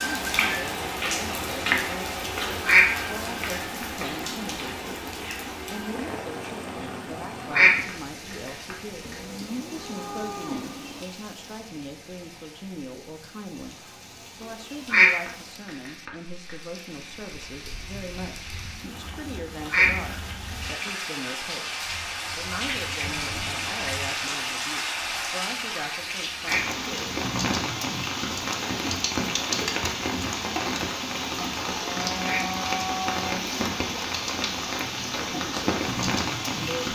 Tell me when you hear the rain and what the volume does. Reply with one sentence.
The rain can be heard from 0.0 to 36.9 s, getting quieter then louder.